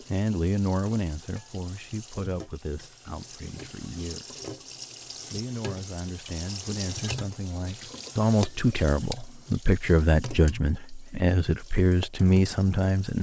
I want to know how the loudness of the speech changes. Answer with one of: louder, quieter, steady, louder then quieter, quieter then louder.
quieter then louder.